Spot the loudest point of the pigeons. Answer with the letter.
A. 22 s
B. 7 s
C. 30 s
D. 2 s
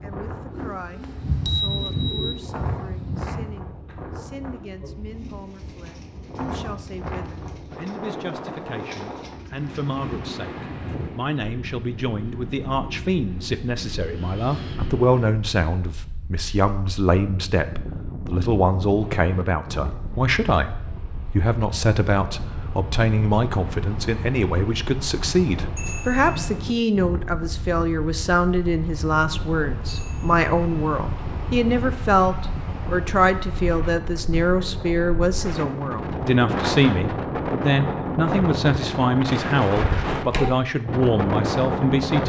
D.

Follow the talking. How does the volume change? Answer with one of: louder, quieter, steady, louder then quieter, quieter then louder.
louder.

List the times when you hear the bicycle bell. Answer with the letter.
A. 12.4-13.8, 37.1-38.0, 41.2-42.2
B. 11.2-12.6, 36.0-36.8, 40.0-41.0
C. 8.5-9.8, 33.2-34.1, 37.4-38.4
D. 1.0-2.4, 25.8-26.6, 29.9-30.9
D.